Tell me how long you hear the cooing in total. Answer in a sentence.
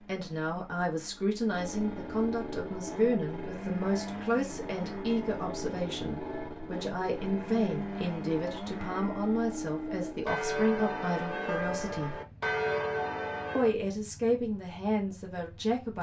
The cooing can't be heard in this clip.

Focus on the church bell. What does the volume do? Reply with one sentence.
The volume of the church bell goes up.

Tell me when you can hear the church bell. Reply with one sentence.
You can hear the church bell from 2.5 to 13.8 s.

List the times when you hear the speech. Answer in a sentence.
The speech can be heard from 0.1 to 12.2 s and from 13.6 to 15.9 s.